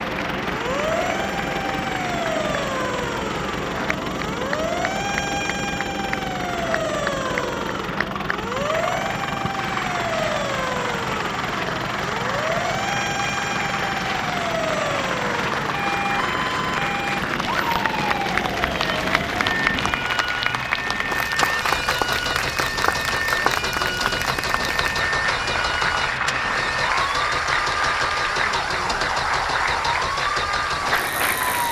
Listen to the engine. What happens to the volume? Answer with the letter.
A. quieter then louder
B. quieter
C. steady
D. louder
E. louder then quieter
C.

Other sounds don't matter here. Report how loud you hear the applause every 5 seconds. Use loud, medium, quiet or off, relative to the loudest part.
medium, medium, medium, loud, loud, loud, loud.